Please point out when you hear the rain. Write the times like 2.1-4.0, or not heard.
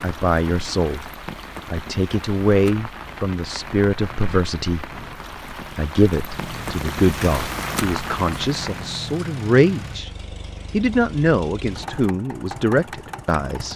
0.0-9.1.